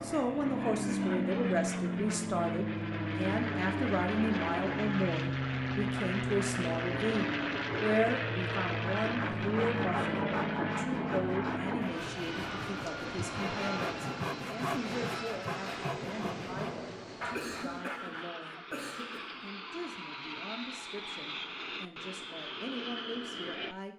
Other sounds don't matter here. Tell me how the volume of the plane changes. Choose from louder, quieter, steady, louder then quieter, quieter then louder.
quieter.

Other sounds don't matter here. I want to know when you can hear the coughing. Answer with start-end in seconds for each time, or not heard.
17.3-19.4.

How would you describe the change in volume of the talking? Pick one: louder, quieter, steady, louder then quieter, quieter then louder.
quieter.